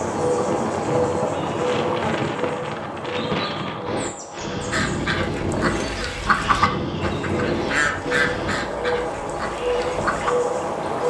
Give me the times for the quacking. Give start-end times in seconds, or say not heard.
4.7-10.3.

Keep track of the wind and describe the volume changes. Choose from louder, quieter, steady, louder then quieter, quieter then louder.
quieter.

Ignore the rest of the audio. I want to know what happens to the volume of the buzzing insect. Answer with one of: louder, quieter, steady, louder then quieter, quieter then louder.
quieter then louder.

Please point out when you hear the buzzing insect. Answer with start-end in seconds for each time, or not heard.
0.0-11.0.